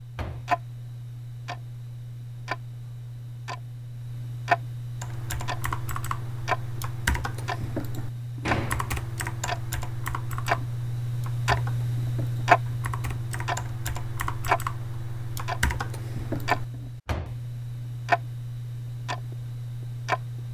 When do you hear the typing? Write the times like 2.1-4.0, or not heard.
5.0-16.6.